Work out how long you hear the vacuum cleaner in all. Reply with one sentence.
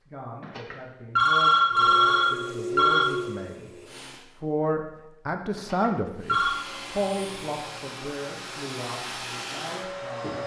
You can hear the vacuum cleaner for 7 seconds altogether.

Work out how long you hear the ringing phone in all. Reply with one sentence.
The ringing phone can be heard for 4 seconds in total.